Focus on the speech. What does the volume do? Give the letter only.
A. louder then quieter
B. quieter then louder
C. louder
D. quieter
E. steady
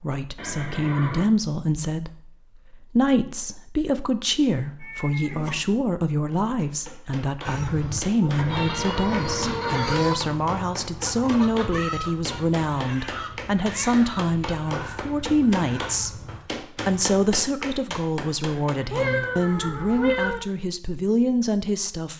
E.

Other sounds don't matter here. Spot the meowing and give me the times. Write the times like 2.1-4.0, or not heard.
4.8-5.5, 8.2-10.2, 18.9-20.4.